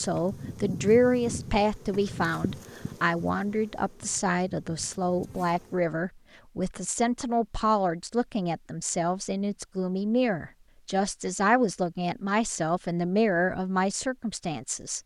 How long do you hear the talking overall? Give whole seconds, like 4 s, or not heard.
15 s.